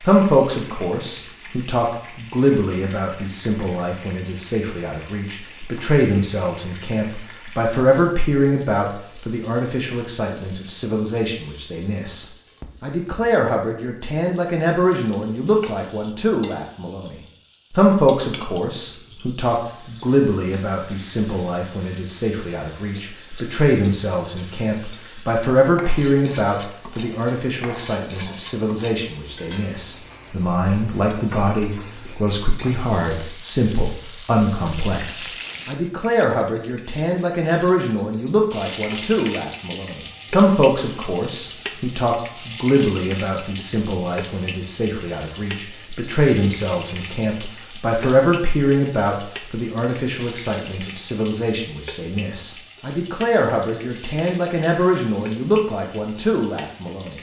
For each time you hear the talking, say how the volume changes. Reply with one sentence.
The talking can be heard from 0.0 to 57.1 s, at a steady volume.